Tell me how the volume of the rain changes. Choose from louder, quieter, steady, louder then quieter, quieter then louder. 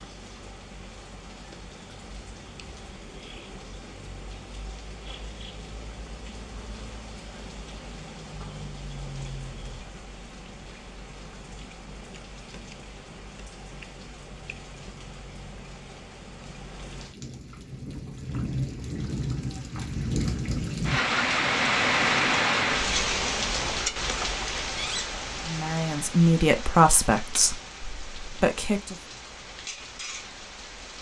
louder then quieter.